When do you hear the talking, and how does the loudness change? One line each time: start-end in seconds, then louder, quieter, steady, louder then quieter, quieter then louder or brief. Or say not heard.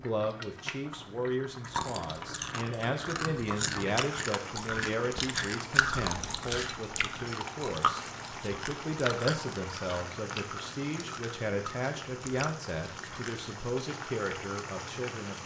0.0-15.4 steady.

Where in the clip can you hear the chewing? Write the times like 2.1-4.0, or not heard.
1.6-13.6.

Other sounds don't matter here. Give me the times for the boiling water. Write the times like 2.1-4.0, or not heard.
0.0-15.4.